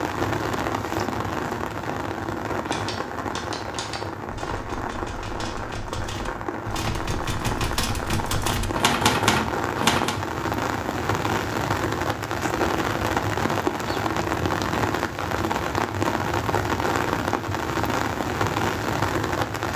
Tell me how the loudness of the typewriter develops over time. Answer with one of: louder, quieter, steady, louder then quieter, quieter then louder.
louder.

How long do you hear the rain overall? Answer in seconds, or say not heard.
20 s.